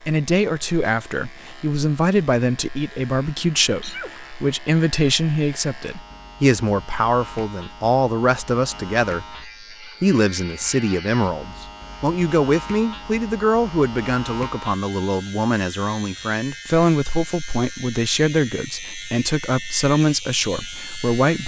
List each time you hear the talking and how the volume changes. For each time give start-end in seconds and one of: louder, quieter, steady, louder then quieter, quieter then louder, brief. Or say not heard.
0.0-21.4 steady.